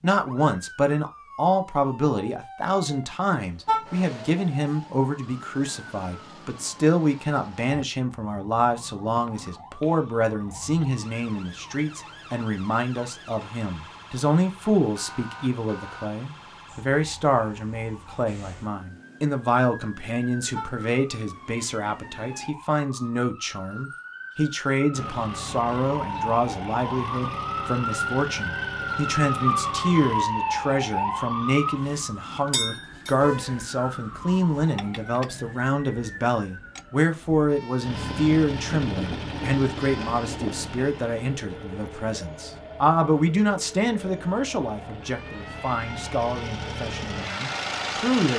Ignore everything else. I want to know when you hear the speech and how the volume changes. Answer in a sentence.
The speech can be heard from 0.0 to 48.3 s, at a steady volume.